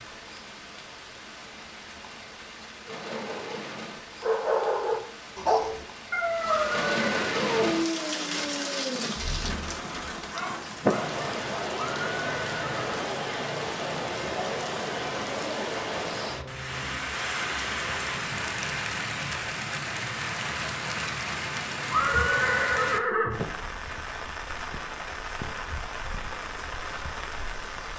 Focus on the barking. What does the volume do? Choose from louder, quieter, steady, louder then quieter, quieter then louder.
quieter.